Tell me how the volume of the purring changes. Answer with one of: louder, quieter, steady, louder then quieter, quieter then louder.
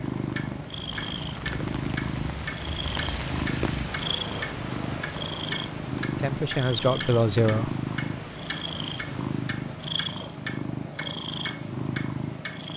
steady.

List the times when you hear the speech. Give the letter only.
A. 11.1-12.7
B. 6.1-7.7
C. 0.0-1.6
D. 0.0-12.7
B.